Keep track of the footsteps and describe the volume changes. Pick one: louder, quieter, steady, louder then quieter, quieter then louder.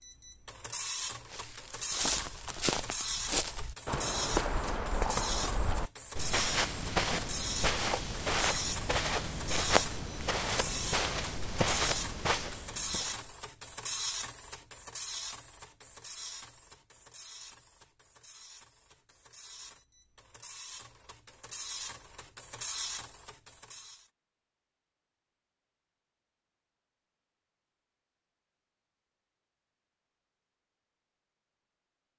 steady.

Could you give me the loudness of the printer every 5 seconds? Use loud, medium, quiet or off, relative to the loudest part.
loud, loud, loud, medium, medium, off, off.